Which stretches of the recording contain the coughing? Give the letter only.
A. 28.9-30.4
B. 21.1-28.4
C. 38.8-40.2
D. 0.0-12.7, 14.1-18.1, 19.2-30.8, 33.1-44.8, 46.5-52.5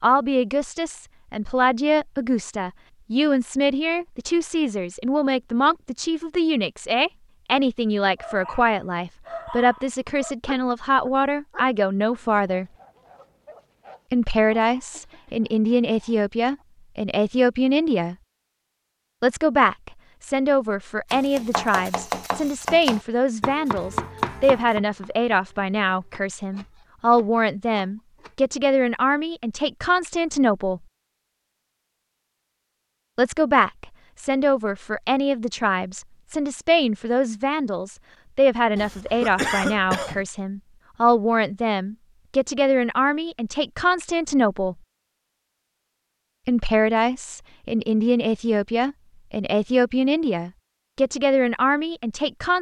C.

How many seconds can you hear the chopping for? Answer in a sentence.
You can hear the chopping for 7 seconds altogether.